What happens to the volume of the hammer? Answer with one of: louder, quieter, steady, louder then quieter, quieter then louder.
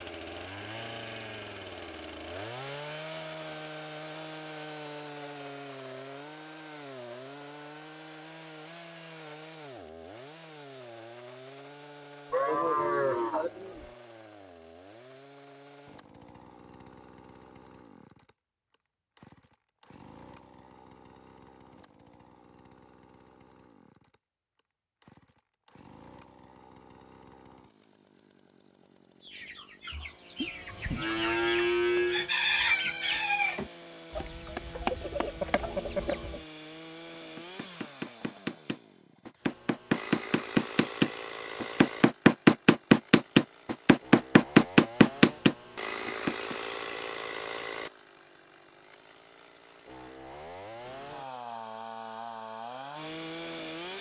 louder.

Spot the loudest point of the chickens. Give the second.
33 s.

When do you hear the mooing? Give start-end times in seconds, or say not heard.
12.3-13.9, 30.4-32.3.